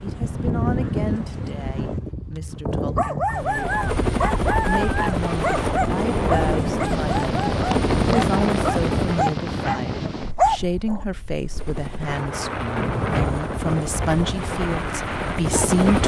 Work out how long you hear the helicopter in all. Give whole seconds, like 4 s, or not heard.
11 s.